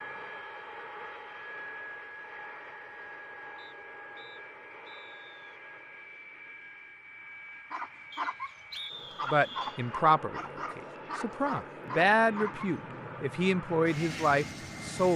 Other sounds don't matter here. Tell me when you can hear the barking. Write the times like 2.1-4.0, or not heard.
7.7-12.9.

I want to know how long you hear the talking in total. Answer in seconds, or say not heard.
6 s.